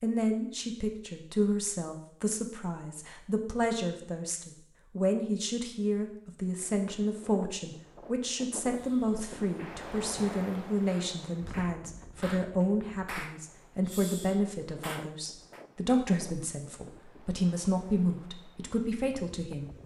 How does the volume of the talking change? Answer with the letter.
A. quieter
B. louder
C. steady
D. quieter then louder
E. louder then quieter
C.